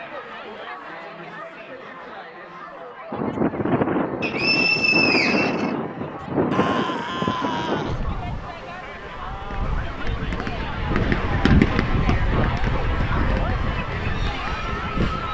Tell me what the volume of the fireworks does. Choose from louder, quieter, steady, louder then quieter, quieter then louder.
louder then quieter.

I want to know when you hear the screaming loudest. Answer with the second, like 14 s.
7 s.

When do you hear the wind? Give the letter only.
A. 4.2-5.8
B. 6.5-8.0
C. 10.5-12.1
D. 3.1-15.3
D.